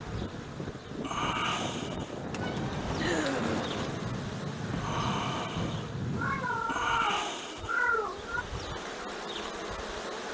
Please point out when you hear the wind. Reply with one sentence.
You can hear the wind from 0.0 to 6.7 s.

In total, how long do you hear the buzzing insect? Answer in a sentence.
The buzzing insect can be heard for 10 seconds in total.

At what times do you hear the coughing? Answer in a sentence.
You can hear the coughing from 3.0 to 3.8 s.